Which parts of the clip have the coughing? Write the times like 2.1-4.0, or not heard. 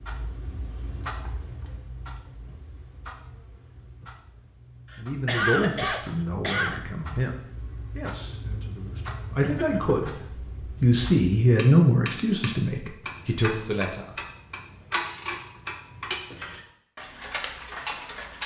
4.9-6.8, 9.4-10.1.